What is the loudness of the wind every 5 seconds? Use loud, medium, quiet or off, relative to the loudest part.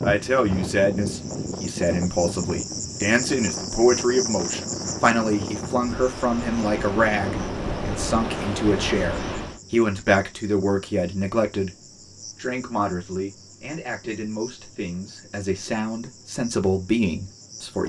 loud, loud, off, off.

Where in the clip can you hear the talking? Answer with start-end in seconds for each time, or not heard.
0.0-17.8.